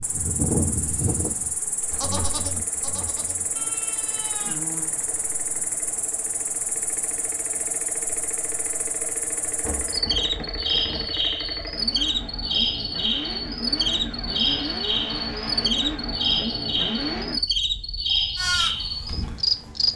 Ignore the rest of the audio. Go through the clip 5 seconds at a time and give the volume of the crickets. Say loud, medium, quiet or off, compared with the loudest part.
medium, medium, loud, loud.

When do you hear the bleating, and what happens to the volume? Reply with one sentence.
The bleating can be heard from 0.0 to 4.9 s, getting quieter; and briefly from 18.4 to 19.9 s.